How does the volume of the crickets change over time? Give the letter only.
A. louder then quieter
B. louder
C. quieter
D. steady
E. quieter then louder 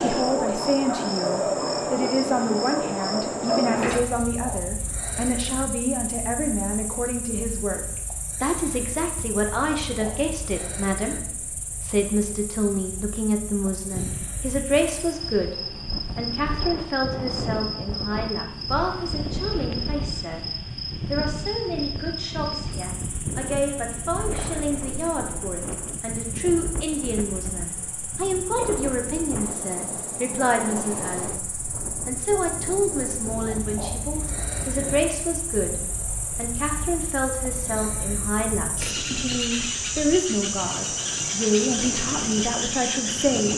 E.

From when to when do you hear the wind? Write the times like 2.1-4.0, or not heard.
13.9-43.5.